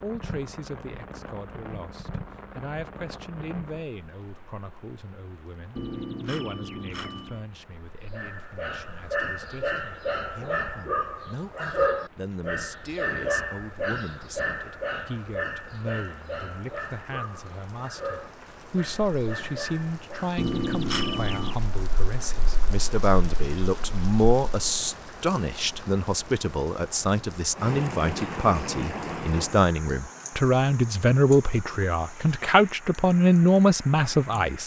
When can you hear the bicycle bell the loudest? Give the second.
21 s.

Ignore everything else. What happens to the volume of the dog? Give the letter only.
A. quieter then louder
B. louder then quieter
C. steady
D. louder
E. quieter
E.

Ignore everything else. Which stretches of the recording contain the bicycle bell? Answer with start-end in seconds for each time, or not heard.
5.8-7.5, 20.4-21.6.